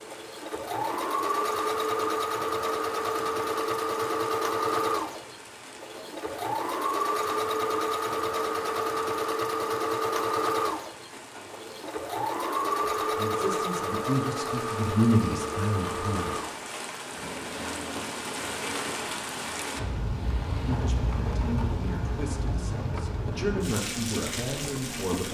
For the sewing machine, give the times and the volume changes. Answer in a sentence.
The sewing machine can be heard from 0.0 to 25.2 s, getting quieter.